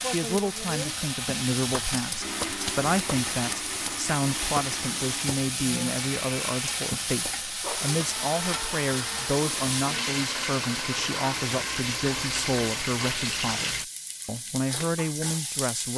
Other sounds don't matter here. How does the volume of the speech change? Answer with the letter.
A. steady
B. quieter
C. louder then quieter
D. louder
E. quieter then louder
A.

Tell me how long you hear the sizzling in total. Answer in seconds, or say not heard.
16 s.